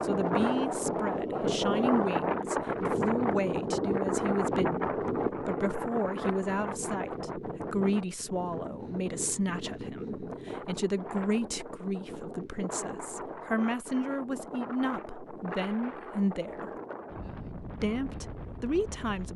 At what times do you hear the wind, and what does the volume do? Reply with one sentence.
The wind can be heard from 0.0 to 19.3 s, getting quieter.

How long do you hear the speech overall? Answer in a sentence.
The speech can be heard for 18 seconds in total.